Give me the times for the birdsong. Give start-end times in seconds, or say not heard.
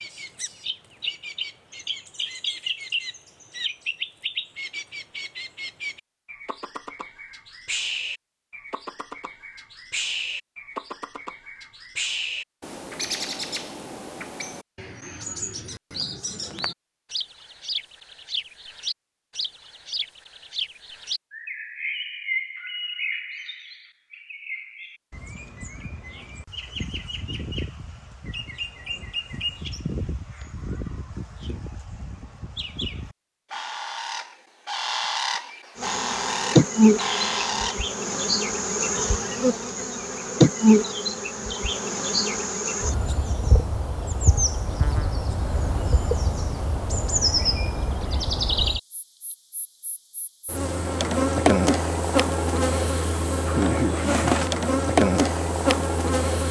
0.0-37.9.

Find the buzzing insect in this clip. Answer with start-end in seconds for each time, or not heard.
35.8-56.4.